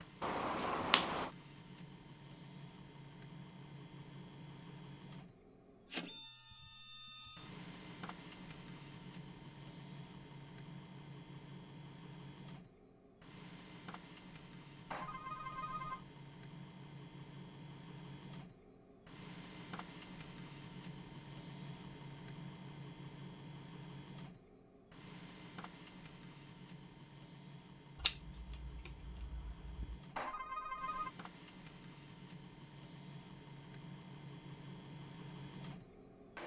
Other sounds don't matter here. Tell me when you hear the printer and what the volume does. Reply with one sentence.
You can hear the printer from 0.0 to 36.4 s, at a steady volume.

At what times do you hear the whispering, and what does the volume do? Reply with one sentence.
The whispering can't be heard in this clip.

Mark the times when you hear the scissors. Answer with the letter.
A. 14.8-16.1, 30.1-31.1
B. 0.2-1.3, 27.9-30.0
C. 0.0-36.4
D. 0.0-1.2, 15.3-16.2
B.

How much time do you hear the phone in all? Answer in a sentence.
You can hear the phone for 2 seconds altogether.